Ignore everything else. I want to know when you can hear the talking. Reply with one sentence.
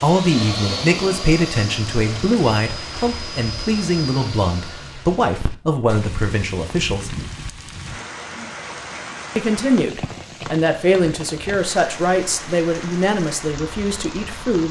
You can hear the talking from 0.0 to 7.2 s and from 9.3 to 14.6 s.